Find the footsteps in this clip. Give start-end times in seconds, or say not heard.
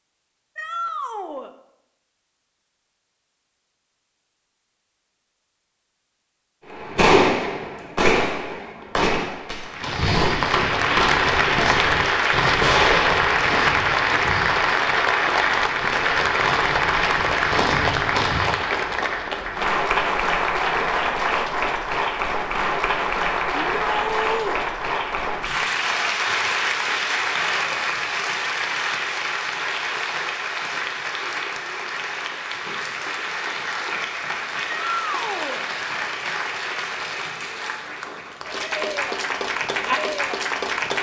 9.8-18.5.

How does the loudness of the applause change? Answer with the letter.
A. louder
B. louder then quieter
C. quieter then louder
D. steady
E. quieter
E.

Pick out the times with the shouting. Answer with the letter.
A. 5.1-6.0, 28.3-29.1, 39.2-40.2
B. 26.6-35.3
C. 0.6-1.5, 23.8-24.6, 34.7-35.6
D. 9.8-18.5
C.